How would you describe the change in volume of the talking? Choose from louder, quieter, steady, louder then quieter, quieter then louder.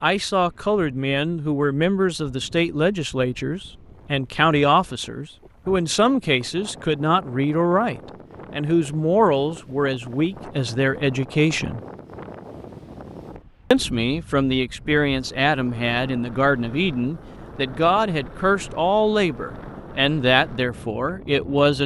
steady.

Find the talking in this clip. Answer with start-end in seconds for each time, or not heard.
0.0-11.8, 13.7-21.8.